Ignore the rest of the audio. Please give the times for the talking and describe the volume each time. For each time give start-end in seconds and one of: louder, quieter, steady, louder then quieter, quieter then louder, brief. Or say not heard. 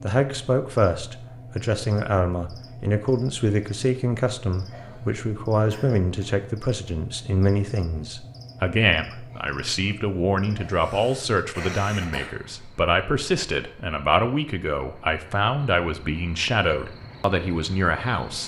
0.0-18.4 steady.